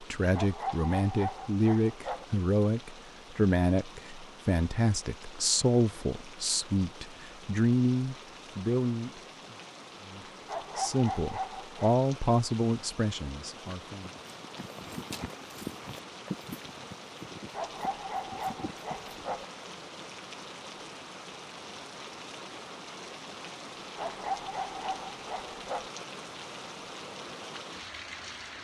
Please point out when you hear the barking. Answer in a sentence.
The barking can be heard from 0.3 to 2.2 s, from 10.4 to 11.9 s, from 17.5 to 19.4 s and from 23.9 to 25.9 s.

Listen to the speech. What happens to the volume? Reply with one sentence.
The volume of the speech stays about the same.